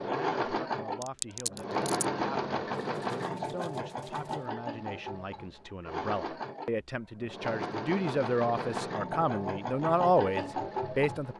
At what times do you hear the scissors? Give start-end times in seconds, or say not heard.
1.0-2.0.